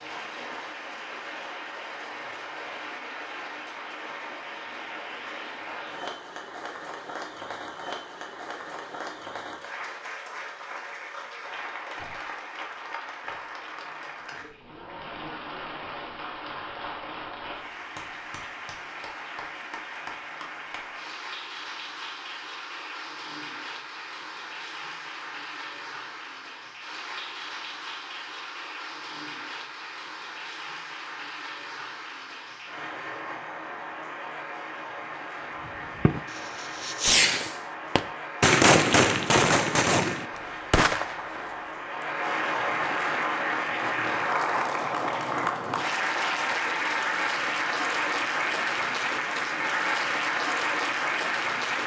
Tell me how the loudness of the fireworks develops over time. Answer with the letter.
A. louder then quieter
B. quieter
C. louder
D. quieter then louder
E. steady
A.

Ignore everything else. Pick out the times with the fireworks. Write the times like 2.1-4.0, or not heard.
35.6-42.0.